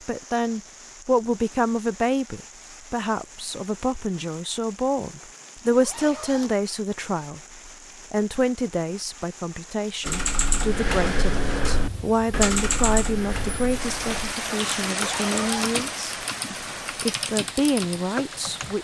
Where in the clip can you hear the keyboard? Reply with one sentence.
The keyboard can be heard from 10.0 to 18.8 s.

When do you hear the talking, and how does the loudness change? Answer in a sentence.
The talking can be heard from 0.1 to 18.8 s, at a steady volume.